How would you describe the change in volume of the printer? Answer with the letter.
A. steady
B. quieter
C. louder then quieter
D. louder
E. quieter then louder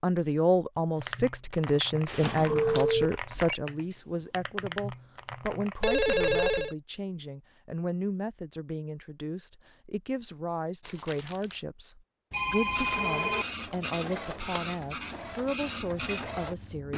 A.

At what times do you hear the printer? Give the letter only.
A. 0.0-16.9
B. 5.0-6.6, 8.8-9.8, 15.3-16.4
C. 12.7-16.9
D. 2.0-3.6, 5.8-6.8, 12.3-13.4
C.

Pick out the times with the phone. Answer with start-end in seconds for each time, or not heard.
2.0-3.6, 5.8-6.8, 12.3-13.4.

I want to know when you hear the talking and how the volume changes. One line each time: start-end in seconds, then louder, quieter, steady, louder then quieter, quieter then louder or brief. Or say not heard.
0.0-16.9 quieter.